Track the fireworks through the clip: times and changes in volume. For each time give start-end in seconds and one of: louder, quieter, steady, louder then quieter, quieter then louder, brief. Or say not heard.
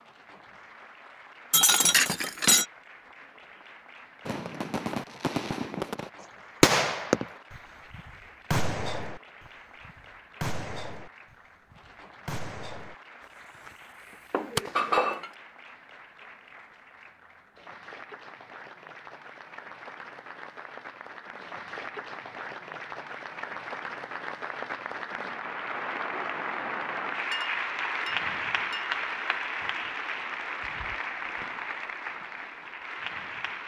4.2-15.1 quieter then louder.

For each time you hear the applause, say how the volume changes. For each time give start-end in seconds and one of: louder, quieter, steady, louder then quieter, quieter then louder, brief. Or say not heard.
0.0-33.6 louder.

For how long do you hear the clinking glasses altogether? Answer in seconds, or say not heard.
4 s.